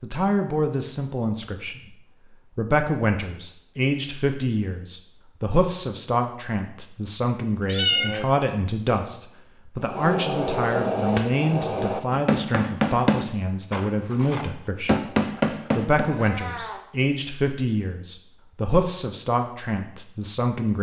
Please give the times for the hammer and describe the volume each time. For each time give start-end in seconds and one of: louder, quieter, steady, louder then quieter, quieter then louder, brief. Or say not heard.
9.8-16.1 quieter then louder.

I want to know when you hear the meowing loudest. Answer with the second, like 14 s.
8 s.